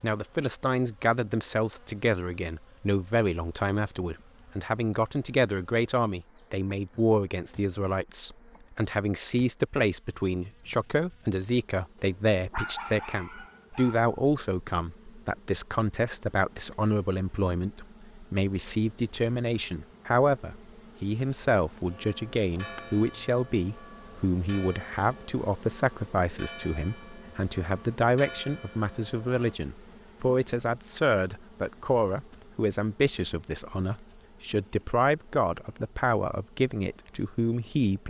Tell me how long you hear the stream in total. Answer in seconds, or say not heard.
not heard.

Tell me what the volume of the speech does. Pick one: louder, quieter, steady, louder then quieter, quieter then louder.
steady.